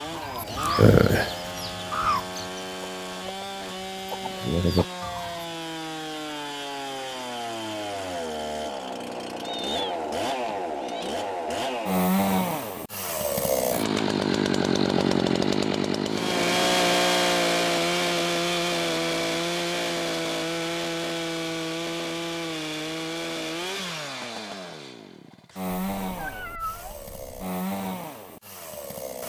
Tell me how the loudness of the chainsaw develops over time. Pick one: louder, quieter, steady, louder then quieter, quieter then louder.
louder then quieter.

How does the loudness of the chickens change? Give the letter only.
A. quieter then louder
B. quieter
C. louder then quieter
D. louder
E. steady
A.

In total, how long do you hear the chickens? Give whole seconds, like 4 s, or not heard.
5 s.